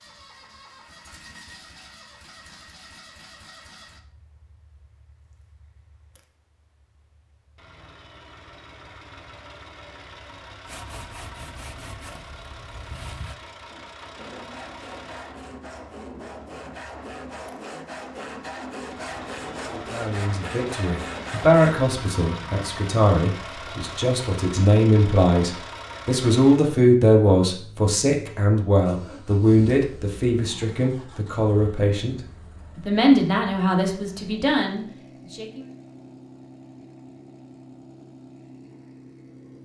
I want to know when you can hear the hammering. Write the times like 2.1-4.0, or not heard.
not heard.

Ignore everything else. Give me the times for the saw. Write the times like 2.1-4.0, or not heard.
10.7-21.8.